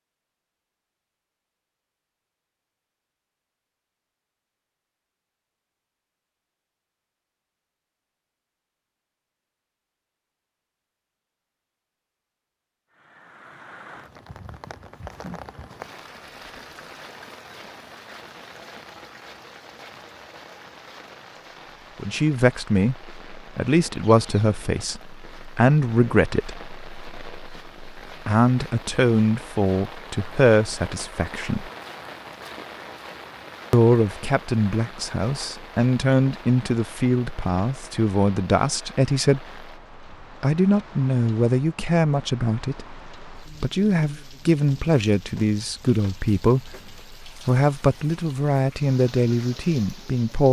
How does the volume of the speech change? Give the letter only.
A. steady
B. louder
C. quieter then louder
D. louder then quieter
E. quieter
A.